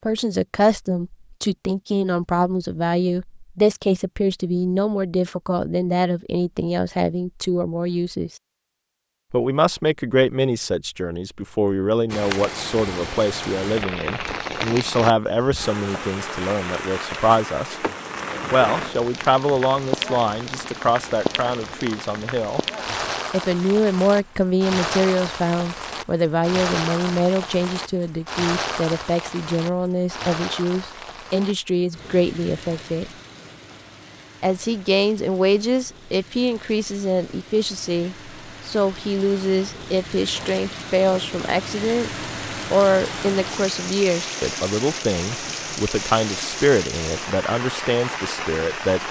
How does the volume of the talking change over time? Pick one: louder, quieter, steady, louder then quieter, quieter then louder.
steady.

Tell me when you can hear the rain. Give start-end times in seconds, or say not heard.
12.1-49.0.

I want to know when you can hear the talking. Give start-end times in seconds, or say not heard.
0.1-8.3, 9.3-17.8, 18.5-22.6, 23.3-33.1, 34.4-42.1, 42.7-49.0.